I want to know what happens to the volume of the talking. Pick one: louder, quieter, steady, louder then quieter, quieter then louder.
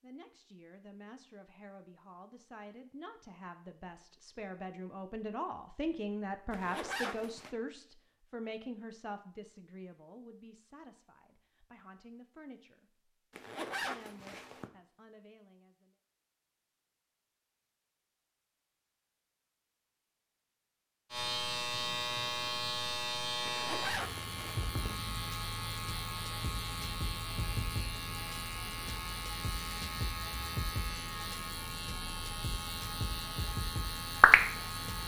louder then quieter.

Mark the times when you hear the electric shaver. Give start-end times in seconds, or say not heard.
21.1-35.0.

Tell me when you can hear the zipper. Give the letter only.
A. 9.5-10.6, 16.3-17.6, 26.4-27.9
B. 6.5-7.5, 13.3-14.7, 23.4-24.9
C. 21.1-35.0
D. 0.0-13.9
B.